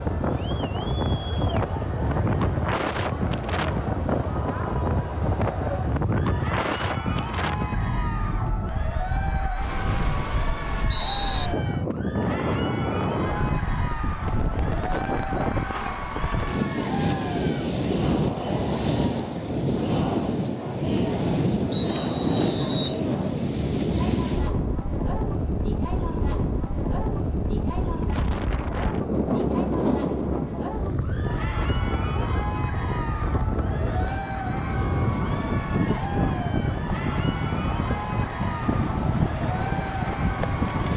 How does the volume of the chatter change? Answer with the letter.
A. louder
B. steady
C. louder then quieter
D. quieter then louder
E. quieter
B.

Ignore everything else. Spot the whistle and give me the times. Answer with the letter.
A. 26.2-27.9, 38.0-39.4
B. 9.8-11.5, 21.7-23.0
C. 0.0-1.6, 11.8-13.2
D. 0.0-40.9
B.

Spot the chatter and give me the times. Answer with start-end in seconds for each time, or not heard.
0.0-40.9.